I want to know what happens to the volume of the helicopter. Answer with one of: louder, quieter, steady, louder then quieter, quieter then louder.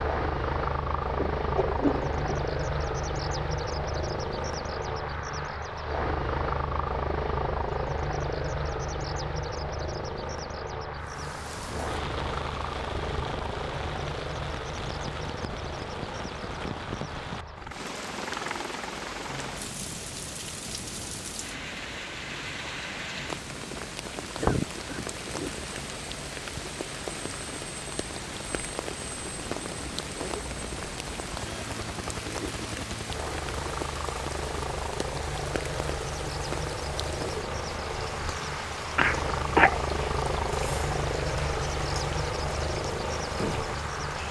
quieter then louder.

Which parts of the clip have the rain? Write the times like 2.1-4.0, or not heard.
11.0-44.2.